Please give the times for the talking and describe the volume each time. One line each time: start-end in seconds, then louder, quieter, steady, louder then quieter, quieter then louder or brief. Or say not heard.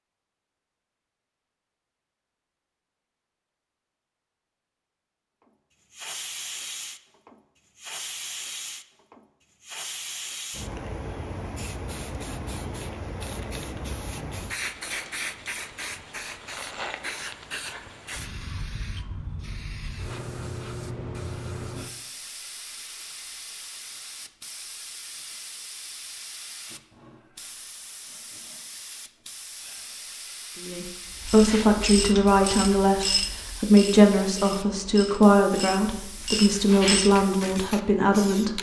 30.6-38.5 steady.